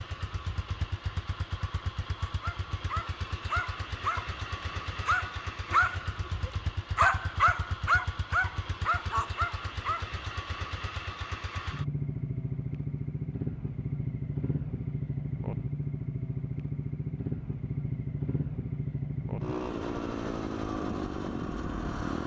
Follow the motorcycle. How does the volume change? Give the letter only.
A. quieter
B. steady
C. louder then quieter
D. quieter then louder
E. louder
E.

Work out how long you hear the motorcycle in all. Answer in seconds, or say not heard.
22 s.